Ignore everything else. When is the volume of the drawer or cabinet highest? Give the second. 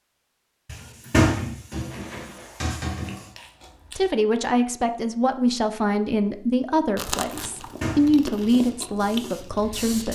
1 s.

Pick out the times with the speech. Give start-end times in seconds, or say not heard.
4.0-10.1.